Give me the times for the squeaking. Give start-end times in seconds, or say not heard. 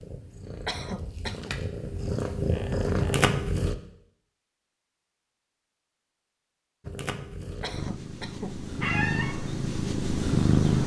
2.5-3.2, 8.8-9.3.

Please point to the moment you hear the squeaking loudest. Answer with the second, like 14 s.
9 s.